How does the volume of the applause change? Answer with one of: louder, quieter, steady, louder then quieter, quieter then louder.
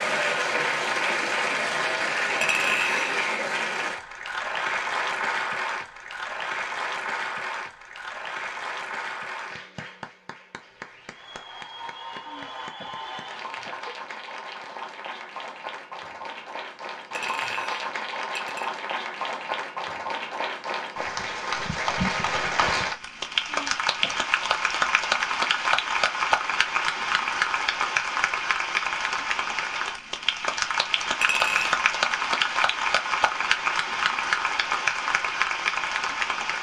quieter then louder.